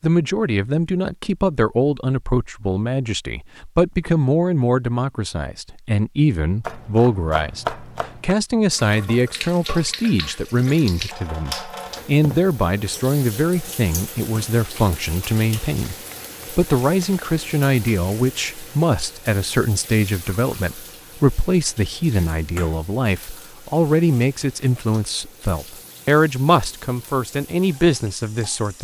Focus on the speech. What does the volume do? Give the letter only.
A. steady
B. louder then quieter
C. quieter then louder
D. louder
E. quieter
A.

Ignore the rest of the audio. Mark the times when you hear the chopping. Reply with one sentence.
The chopping can be heard from 6.6 to 8.3 s and from 15.9 to 17.1 s.